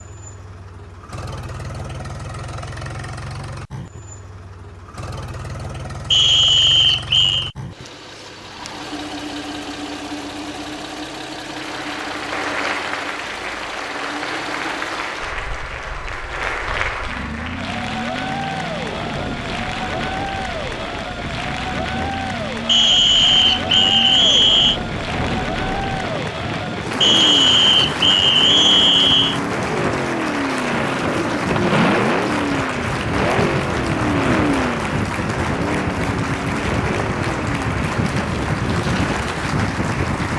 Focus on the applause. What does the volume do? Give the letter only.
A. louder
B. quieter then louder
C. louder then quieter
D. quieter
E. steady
E.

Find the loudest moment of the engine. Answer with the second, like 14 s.
32 s.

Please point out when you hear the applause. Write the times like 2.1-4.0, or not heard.
11.4-40.3.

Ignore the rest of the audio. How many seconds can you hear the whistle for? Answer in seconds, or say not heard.
6 s.